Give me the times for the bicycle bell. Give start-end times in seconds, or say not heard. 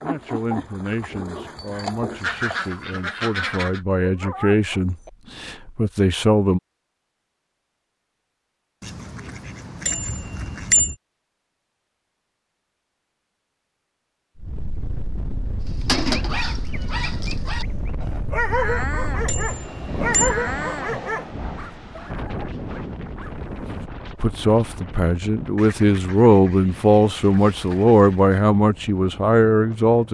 9.8-10.9, 19.2-20.4.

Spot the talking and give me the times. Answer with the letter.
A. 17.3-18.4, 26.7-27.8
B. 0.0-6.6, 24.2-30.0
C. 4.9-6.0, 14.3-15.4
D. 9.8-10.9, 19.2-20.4
B.